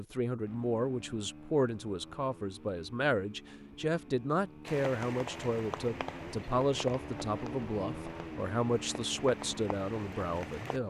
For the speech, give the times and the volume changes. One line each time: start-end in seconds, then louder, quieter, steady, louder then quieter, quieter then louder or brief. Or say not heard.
0.0-10.8 steady.